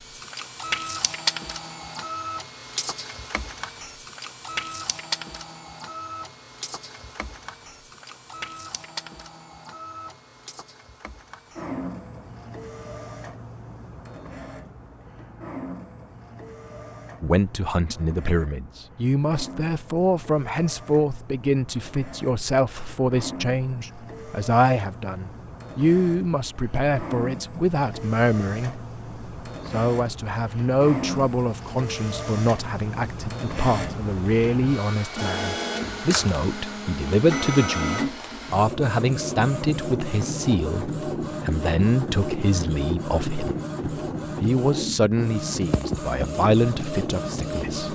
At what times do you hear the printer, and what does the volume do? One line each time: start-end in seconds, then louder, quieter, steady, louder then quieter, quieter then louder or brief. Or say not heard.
0.0-47.9 quieter then louder.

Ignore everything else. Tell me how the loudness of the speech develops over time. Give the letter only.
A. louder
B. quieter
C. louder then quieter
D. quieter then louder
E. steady
E.